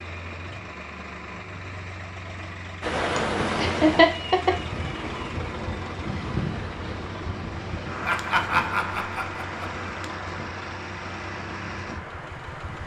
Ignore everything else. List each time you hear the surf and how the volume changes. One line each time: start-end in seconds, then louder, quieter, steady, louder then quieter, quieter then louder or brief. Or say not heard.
2.8-12.8 quieter.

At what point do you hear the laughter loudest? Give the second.
4 s.